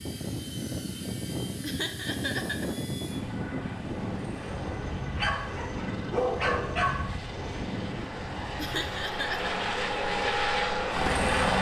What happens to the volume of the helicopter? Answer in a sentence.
The loudness of the helicopter goes up.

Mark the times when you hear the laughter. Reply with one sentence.
You can hear the laughter from 1.6 to 2.7 s and from 8.6 to 9.5 s.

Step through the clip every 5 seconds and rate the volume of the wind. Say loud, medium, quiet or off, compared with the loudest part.
loud, loud, off.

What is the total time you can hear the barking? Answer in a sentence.
The barking can be heard for 2 seconds in total.